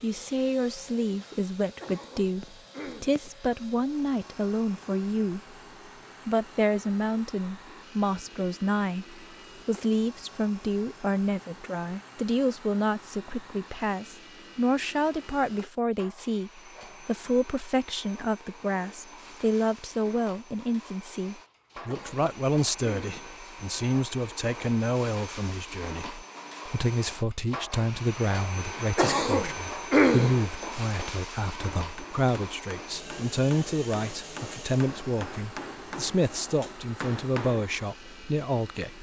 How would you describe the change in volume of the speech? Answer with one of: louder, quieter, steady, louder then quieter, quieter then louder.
steady.